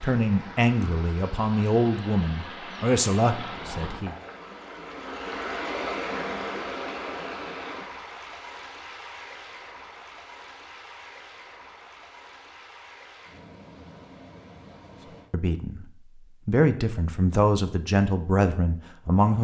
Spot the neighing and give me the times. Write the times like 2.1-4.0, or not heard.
not heard.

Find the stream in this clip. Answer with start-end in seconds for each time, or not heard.
0.0-15.3.